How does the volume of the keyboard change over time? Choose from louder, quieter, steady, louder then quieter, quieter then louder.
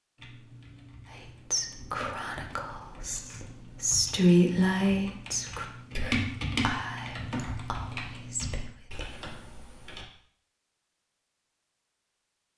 louder then quieter.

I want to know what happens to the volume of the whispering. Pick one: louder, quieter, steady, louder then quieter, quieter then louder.
louder then quieter.